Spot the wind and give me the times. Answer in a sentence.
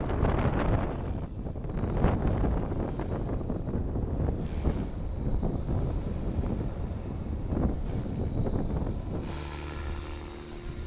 The wind can be heard from 0.0 to 10.8 s.